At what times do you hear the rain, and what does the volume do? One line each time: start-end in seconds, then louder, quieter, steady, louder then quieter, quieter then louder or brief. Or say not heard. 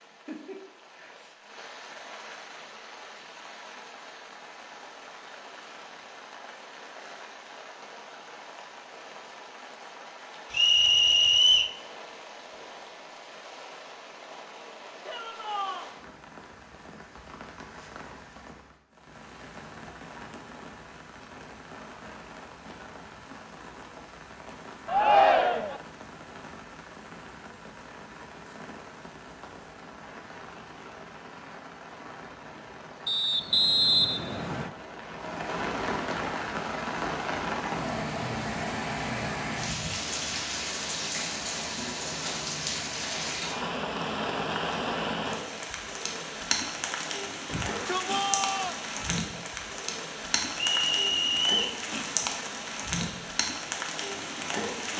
0.0-54.9 louder.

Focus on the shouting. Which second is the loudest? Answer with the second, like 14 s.
25 s.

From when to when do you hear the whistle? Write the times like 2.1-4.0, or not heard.
10.5-11.7, 33.0-34.7, 50.5-51.8.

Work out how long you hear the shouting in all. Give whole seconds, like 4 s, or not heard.
3 s.